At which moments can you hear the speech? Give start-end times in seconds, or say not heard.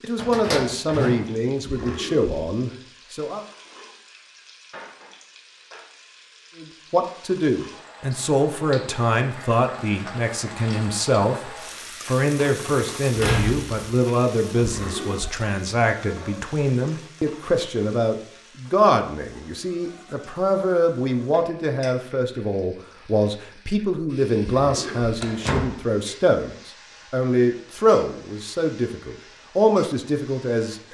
0.0-3.5, 6.5-30.9.